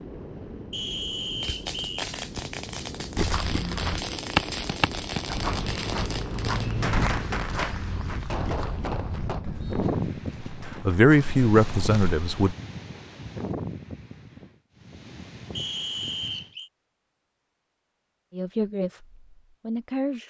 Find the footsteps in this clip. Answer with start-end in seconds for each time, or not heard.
3.1-12.6.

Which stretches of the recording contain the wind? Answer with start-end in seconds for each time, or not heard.
0.0-16.6.